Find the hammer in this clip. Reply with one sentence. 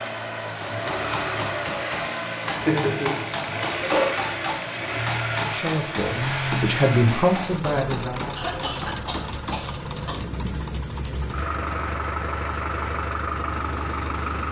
The hammer can be heard from 0.7 to 9.7 s.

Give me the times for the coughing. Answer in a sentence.
The coughing can be heard from 2.4 to 4.1 s and from 8.3 to 10.2 s.